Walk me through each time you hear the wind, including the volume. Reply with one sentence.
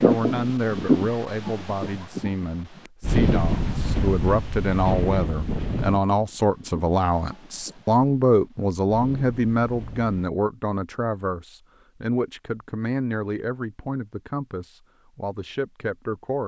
The wind can be heard from 0.0 to 10.2 s, getting quieter.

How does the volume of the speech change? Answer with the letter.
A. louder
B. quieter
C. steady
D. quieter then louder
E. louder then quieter
E.